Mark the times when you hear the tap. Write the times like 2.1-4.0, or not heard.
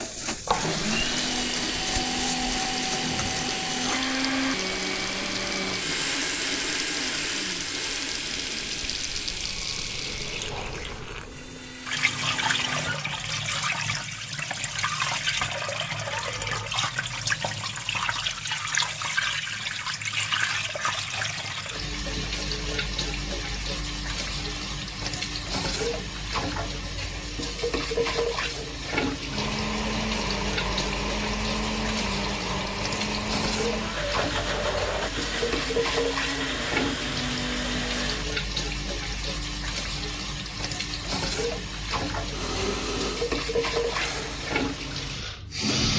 0.0-45.9.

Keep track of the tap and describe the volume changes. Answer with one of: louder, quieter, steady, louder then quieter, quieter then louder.
steady.